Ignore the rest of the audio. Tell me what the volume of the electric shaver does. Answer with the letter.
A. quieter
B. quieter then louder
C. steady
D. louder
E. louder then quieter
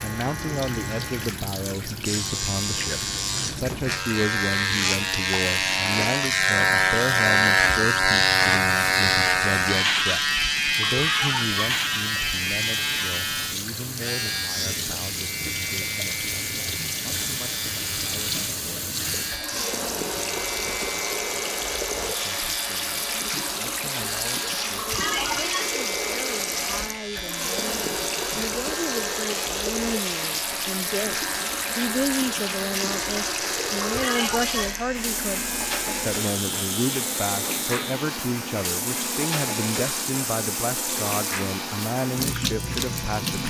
A.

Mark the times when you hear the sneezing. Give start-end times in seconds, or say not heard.
10.8-11.6, 24.8-25.8, 33.8-34.8.